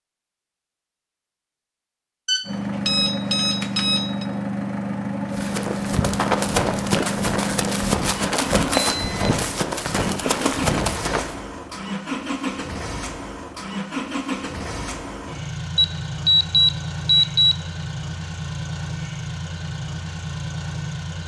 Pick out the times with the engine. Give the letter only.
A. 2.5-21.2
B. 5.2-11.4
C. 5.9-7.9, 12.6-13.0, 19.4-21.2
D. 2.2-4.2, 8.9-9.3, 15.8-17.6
A.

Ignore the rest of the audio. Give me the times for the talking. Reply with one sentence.
You can't hear the talking here.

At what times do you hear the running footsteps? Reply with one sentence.
The running footsteps can be heard from 5.2 to 11.4 s.